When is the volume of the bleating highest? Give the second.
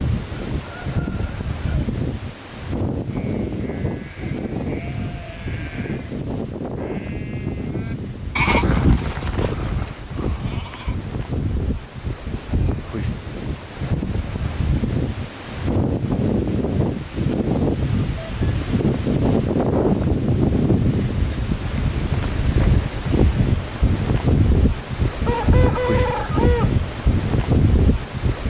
9 s.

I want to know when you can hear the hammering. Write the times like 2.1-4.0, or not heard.
not heard.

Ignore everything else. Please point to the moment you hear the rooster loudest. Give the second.
26 s.